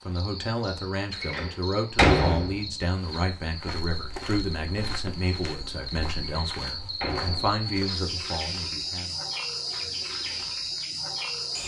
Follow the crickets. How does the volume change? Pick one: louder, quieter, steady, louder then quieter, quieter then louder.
louder.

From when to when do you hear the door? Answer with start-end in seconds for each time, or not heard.
1.2-2.7, 6.2-7.6.